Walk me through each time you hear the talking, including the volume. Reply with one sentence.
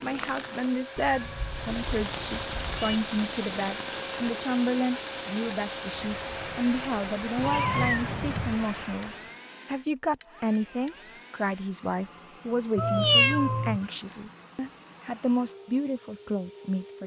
The talking can be heard from 0.0 to 17.0 s, at a steady volume.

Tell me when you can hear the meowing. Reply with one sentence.
You can hear the meowing from 0.9 to 3.0 s, from 7.3 to 8.7 s and from 12.8 to 13.8 s.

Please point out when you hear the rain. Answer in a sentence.
You can hear the rain from 0.0 to 9.4 s.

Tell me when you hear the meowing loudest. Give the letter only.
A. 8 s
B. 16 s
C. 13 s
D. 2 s
C.